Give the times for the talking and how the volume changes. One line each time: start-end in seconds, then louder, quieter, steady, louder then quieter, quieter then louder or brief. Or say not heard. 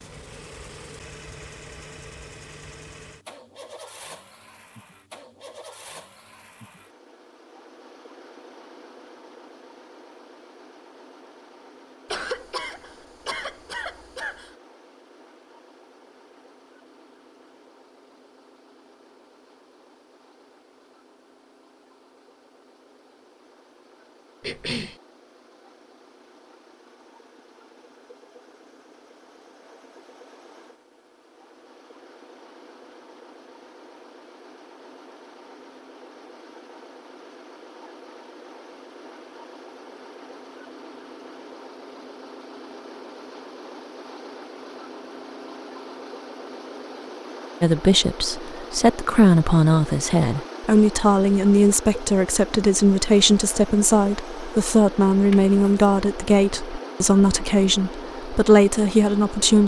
47.6-59.6 steady.